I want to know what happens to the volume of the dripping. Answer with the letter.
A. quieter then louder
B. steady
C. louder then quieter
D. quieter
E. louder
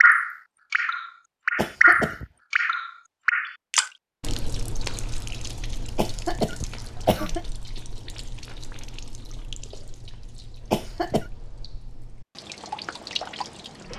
A.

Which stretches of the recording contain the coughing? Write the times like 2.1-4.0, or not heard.
1.6-2.2, 6.0-7.5, 10.7-11.3.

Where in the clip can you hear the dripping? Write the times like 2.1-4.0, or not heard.
0.0-13.9.